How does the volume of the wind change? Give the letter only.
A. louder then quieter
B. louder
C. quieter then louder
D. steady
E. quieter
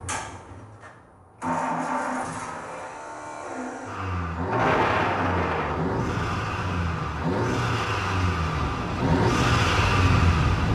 C.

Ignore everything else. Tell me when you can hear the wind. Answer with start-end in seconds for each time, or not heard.
4.5-10.6.